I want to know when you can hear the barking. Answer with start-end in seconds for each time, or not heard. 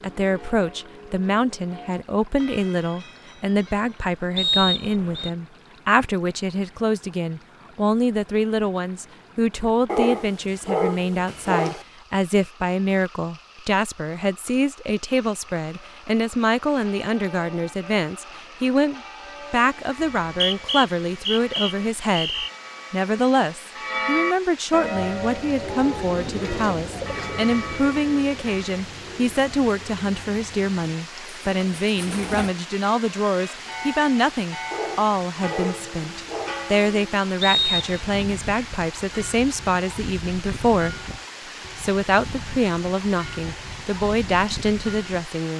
9.8-11.8, 34.7-36.6.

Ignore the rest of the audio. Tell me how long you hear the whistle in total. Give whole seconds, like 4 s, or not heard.
4 s.